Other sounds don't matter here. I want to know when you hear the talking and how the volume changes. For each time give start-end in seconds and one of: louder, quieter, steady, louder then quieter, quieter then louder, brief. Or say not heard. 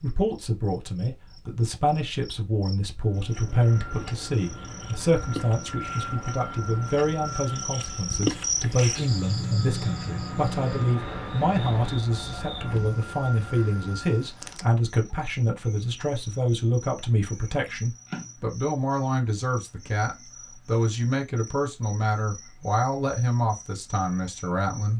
0.0-24.9 steady.